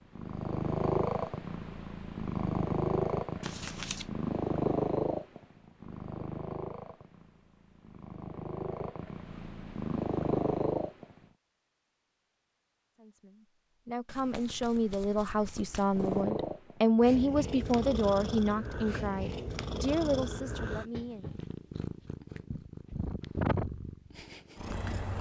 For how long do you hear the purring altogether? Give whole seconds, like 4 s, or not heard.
20 s.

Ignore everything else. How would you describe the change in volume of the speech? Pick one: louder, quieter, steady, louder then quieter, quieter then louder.
louder then quieter.